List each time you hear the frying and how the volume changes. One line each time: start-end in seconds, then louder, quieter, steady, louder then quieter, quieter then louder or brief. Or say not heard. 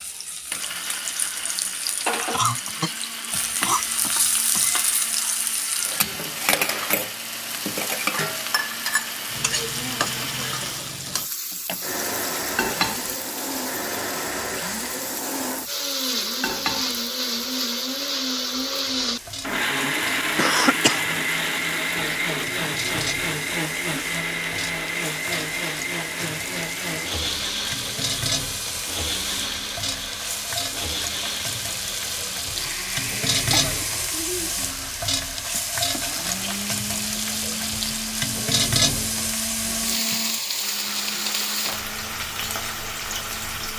0.0-43.7 quieter then louder.